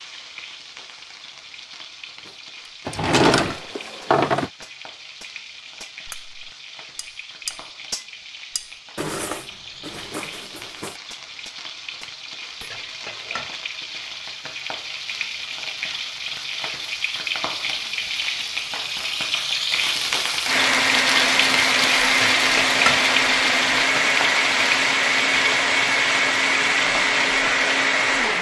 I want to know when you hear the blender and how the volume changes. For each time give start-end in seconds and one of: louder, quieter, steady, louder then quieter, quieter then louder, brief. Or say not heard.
20.4-28.3 steady.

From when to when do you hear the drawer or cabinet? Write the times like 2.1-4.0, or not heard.
2.9-4.5.